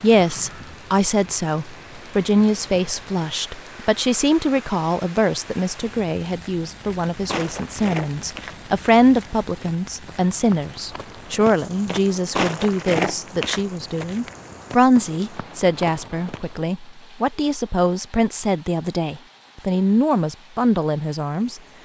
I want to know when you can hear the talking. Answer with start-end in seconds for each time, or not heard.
0.0-21.6.